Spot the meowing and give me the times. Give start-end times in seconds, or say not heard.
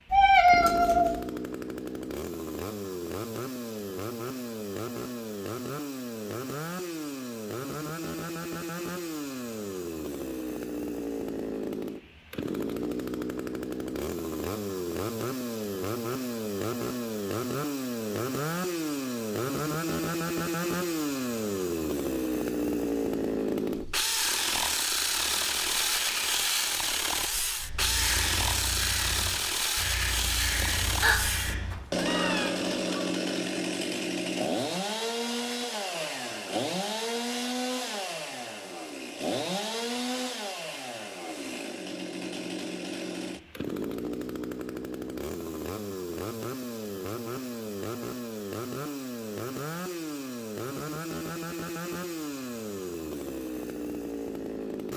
0.1-1.2, 30.6-32.5.